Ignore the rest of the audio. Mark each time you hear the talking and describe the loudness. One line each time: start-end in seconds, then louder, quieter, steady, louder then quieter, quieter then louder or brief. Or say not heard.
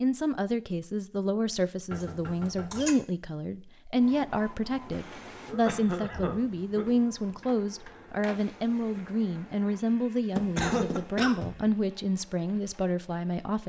0.0-13.6 steady.